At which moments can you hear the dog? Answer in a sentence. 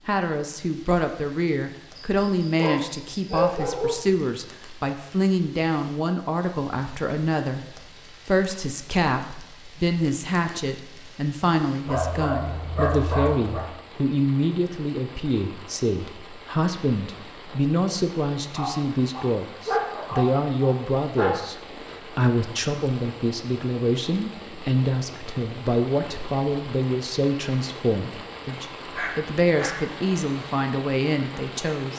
The dog can be heard from 1.9 to 4.0 s, from 11.8 to 13.7 s, from 18.6 to 21.4 s and from 28.9 to 29.8 s.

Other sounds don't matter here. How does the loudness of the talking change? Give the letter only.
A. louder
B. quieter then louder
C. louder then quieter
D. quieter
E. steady
E.